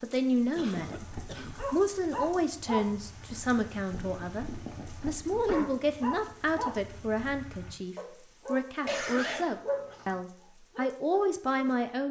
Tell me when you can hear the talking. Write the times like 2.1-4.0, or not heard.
0.0-1.1, 1.7-12.0.